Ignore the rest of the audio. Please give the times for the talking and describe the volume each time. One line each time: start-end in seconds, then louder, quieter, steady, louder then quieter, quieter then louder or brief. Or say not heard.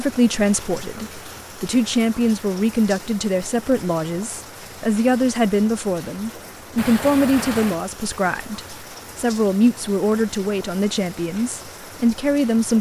0.0-12.7 steady.